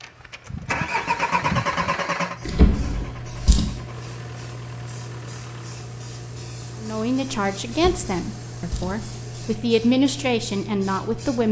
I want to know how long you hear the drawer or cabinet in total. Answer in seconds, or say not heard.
3 s.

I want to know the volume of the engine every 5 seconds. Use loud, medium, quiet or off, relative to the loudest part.
loud, quiet, off.